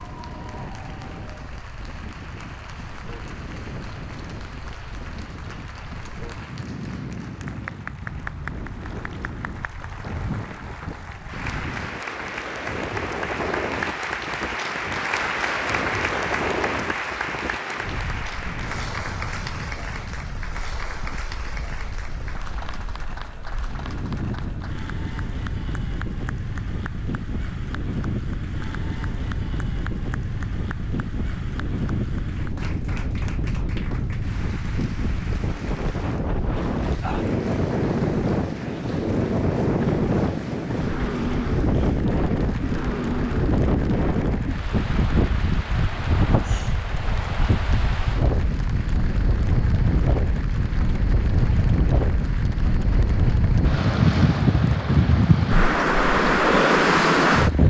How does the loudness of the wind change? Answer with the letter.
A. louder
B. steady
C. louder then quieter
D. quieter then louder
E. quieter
A.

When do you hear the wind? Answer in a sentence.
The wind can be heard from 0.0 to 57.6 s.